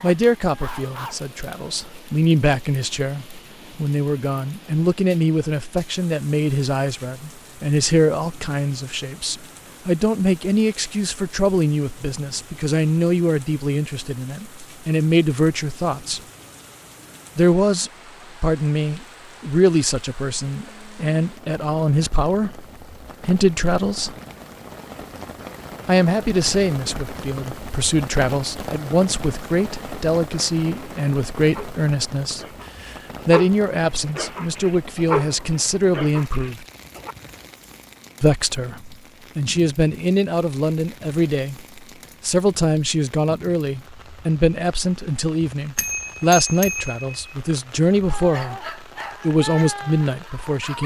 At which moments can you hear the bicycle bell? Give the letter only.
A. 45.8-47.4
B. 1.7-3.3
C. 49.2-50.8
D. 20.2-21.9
A.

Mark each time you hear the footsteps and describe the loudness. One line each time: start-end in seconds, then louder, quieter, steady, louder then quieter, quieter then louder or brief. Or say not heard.
not heard.